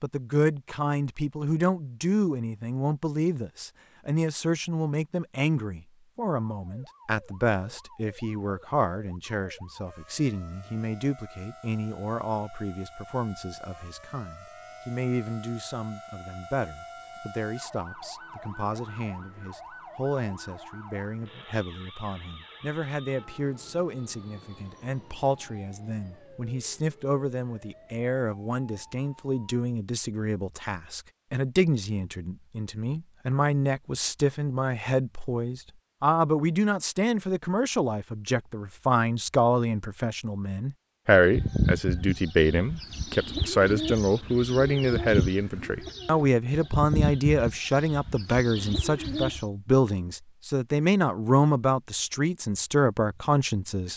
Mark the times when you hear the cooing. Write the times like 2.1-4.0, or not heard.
41.1-49.5.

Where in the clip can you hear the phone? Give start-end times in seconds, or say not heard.
not heard.